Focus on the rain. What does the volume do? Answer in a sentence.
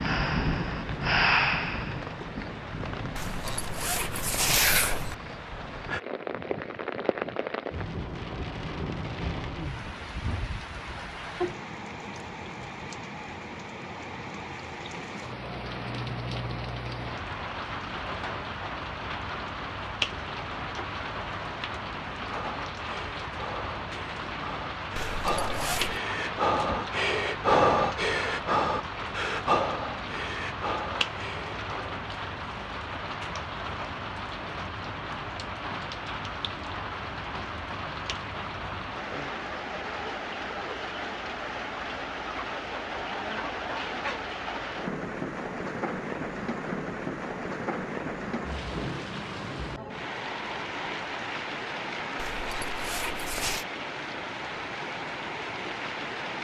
The loudness of the rain stays about the same.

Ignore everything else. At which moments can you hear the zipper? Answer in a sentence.
You can hear the zipper from 3.1 to 5.2 s, from 24.9 to 26.0 s and from 52.1 to 53.6 s.